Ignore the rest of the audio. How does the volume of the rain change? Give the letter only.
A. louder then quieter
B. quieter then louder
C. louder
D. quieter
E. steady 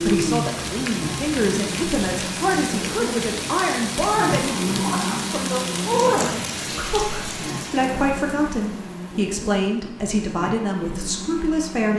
D.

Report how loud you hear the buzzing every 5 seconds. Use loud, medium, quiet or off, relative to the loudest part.
loud, loud, medium.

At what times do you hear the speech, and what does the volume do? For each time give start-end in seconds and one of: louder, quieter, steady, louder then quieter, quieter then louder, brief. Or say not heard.
0.0-11.9 steady.